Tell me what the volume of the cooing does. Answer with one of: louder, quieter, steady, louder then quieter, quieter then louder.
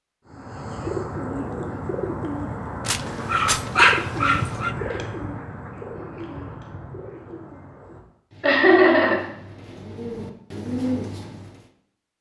quieter then louder.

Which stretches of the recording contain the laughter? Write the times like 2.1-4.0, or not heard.
8.4-9.2.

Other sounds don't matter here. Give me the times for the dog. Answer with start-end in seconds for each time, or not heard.
2.9-4.8.